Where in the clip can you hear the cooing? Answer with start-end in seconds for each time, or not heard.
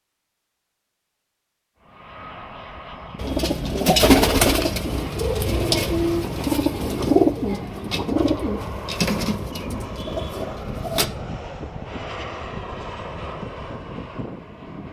3.1-11.1.